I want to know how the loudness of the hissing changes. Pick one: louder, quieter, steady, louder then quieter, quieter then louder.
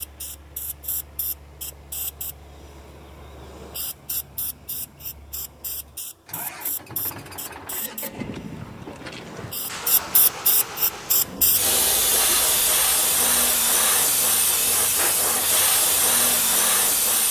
louder.